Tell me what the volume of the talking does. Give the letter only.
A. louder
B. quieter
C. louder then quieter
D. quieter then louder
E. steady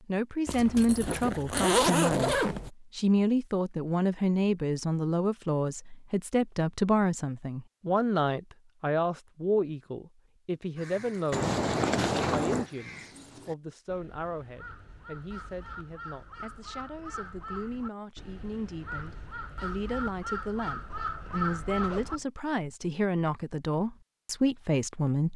D.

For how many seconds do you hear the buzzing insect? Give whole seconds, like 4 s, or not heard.
not heard.